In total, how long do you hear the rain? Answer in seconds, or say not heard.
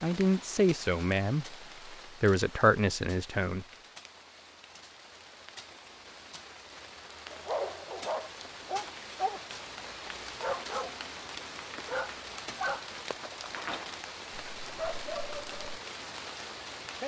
17 s.